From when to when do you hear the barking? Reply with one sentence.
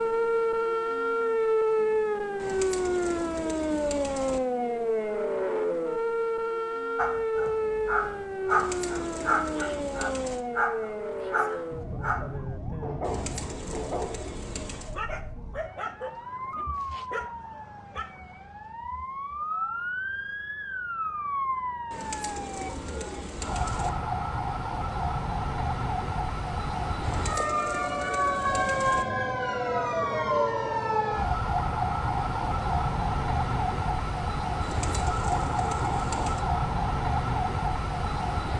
The barking can be heard from 7.0 to 18.1 s.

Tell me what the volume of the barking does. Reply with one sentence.
The loudness of the barking goes down.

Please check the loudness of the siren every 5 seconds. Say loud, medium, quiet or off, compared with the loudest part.
loud, loud, medium, medium, medium, loud, loud, loud.